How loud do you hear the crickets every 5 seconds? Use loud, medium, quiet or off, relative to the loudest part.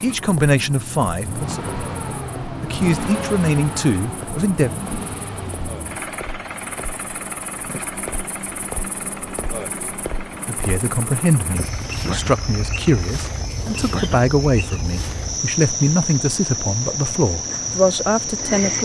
quiet, medium, medium, loud.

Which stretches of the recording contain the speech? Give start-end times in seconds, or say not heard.
0.0-4.7, 10.4-18.8.